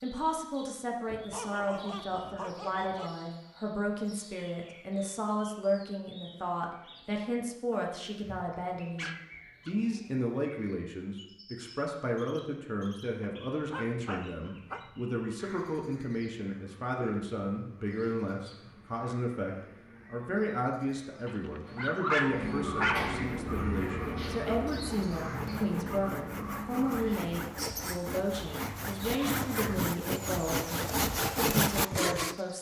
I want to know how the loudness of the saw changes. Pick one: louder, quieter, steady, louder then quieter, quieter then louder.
louder.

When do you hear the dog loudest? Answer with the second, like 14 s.
22 s.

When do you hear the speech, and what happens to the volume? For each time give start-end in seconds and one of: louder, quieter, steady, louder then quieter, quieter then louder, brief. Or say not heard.
0.0-32.5 steady.